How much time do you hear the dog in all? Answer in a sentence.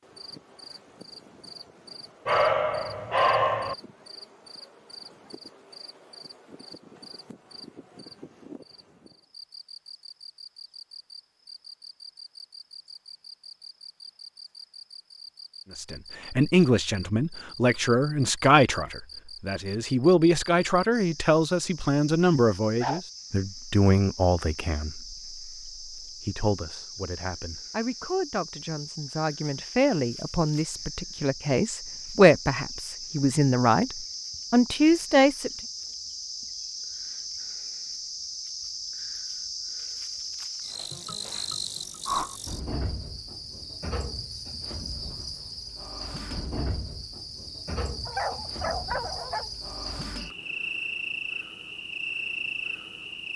You can hear the dog for 3 seconds altogether.